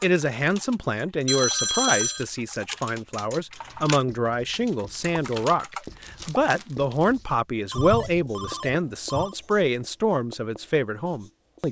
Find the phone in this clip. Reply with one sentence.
The phone can be heard from 1.2 to 2.2 s and from 7.7 to 9.3 s.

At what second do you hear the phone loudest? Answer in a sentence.
The loudest moment of the phone is at 2 seconds.